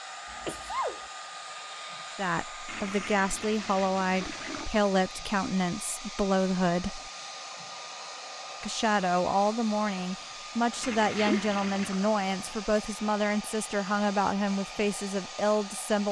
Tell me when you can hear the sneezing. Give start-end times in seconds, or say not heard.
0.3-1.0, 10.7-12.6.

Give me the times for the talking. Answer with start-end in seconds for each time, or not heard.
2.1-7.1, 8.6-16.0.